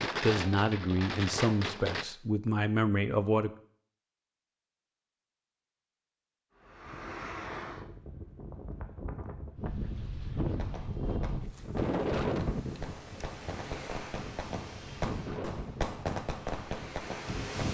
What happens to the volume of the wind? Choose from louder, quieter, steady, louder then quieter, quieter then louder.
louder then quieter.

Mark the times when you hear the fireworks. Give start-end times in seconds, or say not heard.
0.0-2.0, 10.6-17.4.